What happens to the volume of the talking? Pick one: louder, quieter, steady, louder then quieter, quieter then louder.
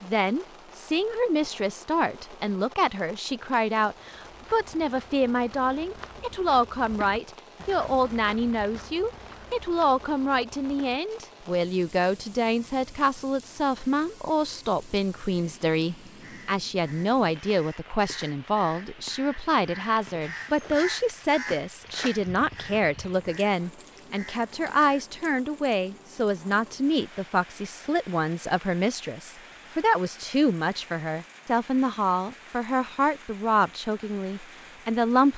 steady.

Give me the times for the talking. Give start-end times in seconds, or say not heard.
0.0-35.3.